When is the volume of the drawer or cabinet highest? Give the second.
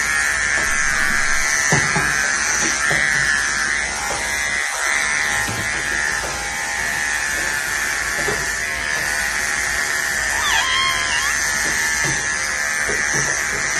11 s.